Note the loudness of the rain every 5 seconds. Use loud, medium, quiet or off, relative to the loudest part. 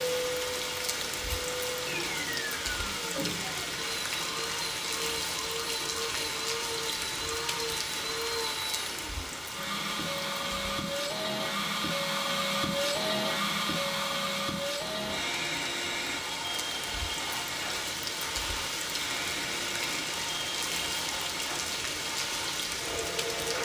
loud, loud, medium, loud, loud.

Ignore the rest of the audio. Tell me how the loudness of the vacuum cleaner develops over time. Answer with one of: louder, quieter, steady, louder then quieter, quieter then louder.
louder then quieter.